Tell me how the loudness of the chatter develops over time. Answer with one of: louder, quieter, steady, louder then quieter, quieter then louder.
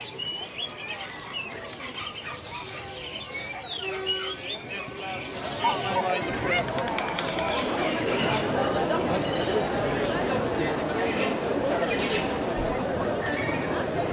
louder.